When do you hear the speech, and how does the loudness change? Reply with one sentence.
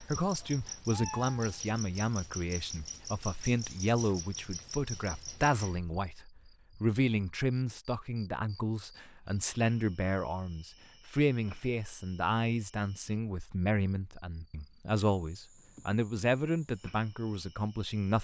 You can hear the speech from 0.0 to 18.1 s, at a steady volume.